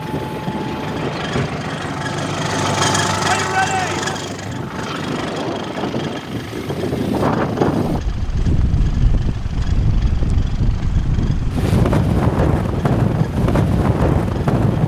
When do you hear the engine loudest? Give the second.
3 s.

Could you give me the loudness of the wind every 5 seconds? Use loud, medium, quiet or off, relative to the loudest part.
medium, loud, loud.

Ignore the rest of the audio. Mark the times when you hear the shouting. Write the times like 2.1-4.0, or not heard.
3.2-4.1.